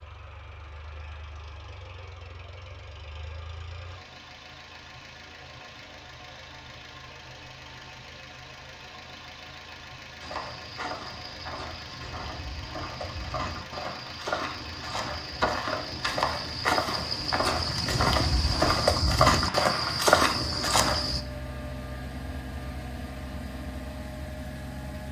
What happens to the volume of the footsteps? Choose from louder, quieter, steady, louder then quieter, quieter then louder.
louder.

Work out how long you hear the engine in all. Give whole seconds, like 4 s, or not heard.
25 s.